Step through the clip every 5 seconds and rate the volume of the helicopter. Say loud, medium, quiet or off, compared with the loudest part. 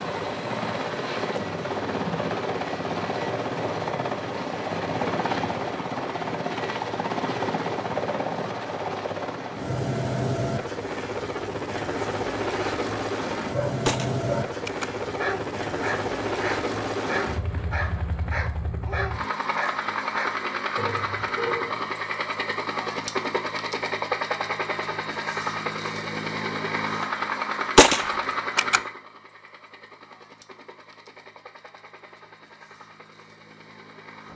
loud, loud, loud, loud, loud, loud, quiet.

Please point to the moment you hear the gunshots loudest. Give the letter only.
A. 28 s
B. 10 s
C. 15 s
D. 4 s
A.